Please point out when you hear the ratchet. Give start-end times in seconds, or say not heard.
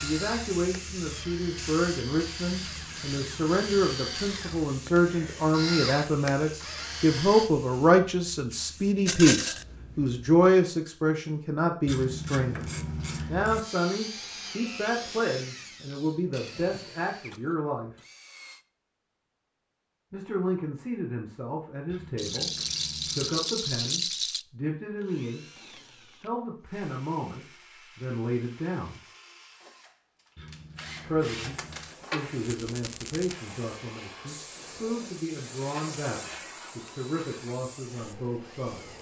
2.5-3.8, 11.8-13.6, 21.9-23.4, 30.4-31.9.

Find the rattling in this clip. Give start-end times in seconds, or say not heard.
9.1-9.7, 22.1-24.4, 32.4-33.4.